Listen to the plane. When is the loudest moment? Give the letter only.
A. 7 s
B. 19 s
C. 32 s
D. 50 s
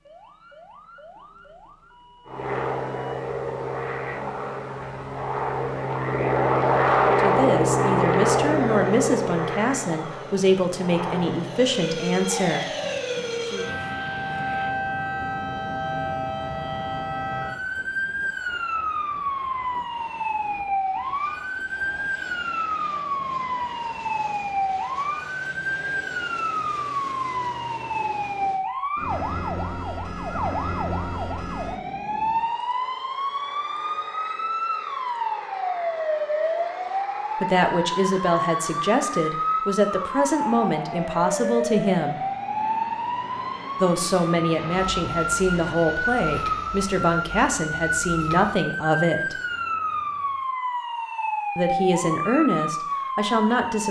A.